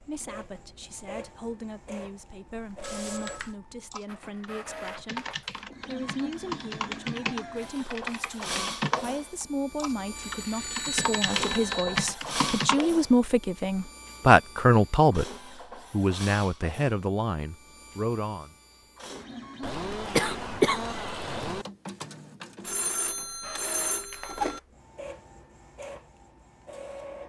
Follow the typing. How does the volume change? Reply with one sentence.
The volume of the typing goes up.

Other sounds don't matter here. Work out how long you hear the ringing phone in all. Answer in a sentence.
You can hear the ringing phone for 5 seconds altogether.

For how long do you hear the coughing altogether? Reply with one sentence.
The coughing can be heard for 2 seconds in total.